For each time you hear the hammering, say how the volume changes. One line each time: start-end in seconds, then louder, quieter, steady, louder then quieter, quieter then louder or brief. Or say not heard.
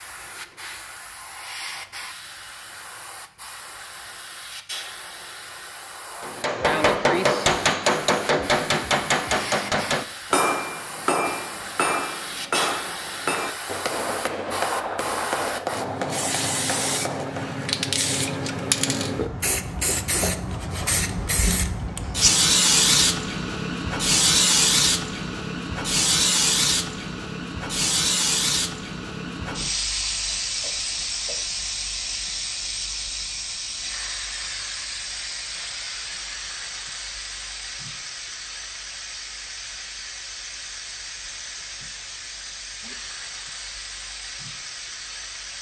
6.2-17.6 quieter.